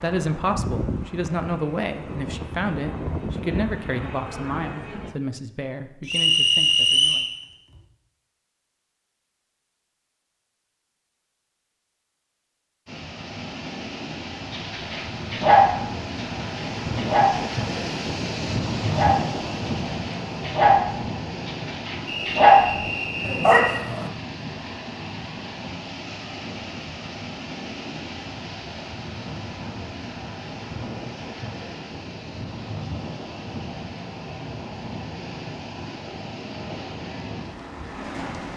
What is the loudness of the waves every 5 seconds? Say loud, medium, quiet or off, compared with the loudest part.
off, off, medium, loud, medium, medium, medium, medium.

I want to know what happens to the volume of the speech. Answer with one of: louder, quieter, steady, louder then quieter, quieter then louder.
quieter.